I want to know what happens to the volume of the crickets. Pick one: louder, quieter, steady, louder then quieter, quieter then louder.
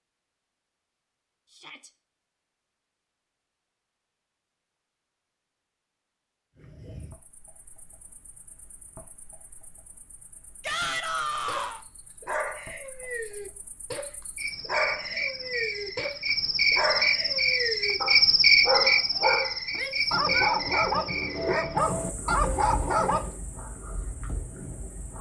louder then quieter.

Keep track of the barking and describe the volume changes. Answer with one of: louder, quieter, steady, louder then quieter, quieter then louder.
louder.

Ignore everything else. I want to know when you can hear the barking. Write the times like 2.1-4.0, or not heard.
11.4-23.3.